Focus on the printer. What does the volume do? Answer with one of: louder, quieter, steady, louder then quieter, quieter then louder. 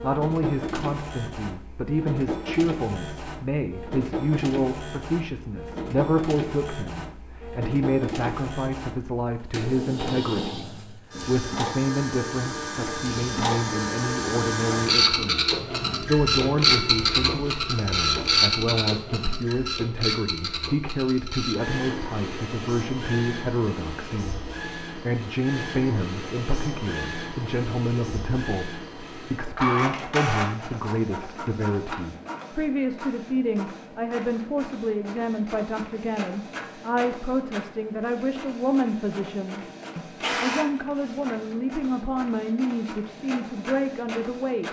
louder then quieter.